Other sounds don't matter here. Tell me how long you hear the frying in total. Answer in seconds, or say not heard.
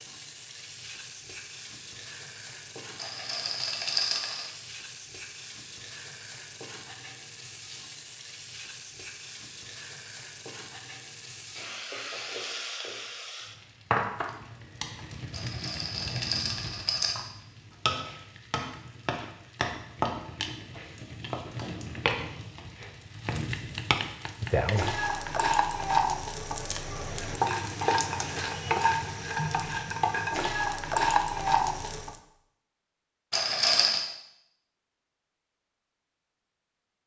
32 s.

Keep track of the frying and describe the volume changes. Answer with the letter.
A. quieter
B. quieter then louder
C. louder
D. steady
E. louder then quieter
C.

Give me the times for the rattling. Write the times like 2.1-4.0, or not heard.
3.0-4.5, 15.3-17.1, 33.3-34.0.